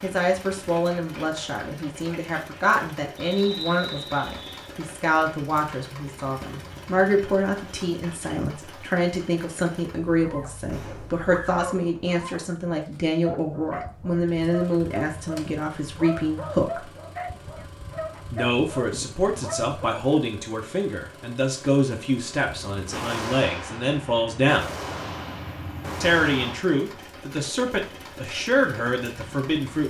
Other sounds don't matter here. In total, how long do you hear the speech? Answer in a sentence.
You can hear the speech for 27 seconds altogether.